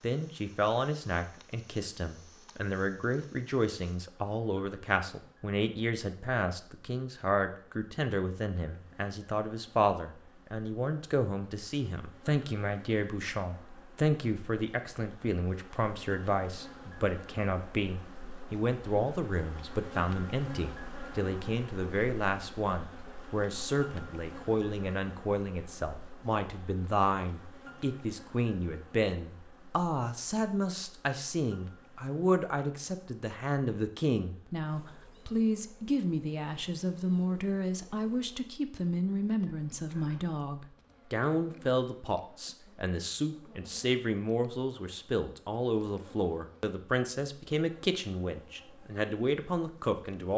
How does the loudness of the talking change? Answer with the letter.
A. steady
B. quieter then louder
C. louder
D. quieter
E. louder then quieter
A.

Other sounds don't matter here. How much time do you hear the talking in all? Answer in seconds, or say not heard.
50 s.